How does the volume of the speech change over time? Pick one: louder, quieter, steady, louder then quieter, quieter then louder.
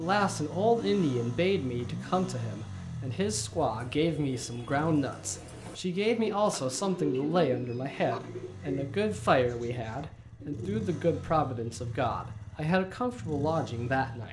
steady.